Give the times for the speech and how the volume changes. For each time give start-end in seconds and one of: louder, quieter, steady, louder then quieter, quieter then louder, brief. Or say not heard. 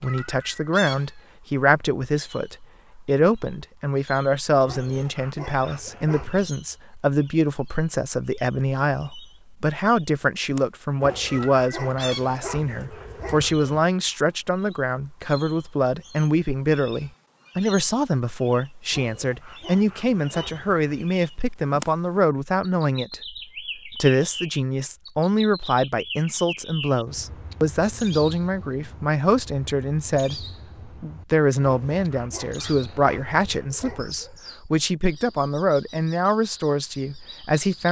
0.0-37.8 steady.